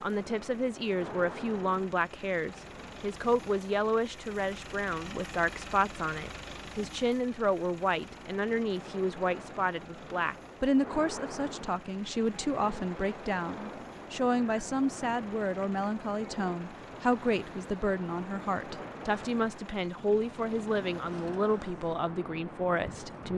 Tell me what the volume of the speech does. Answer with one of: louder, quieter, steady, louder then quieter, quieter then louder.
steady.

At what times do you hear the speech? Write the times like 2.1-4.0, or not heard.
0.0-23.3.